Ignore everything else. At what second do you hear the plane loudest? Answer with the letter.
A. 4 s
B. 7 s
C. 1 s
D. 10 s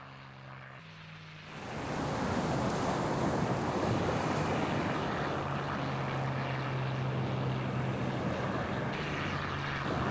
B.